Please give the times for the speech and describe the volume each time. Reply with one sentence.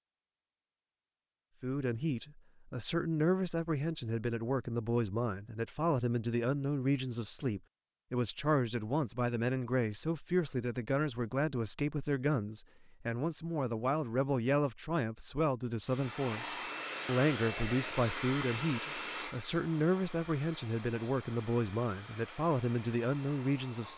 You can hear the speech from 1.6 to 23.9 s, at a steady volume.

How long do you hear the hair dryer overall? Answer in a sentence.
The hair dryer can be heard for 8 seconds in total.